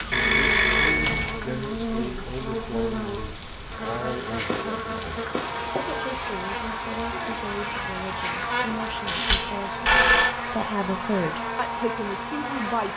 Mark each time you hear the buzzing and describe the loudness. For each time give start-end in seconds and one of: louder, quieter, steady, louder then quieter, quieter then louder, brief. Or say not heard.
0.0-12.9 steady.